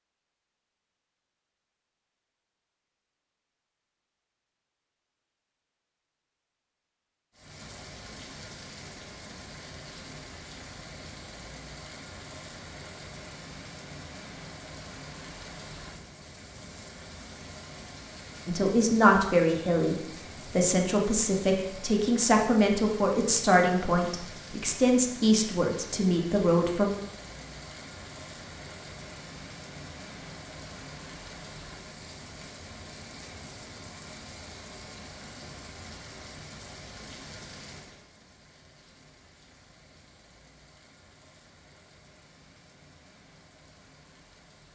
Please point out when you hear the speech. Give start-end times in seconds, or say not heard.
18.4-26.9.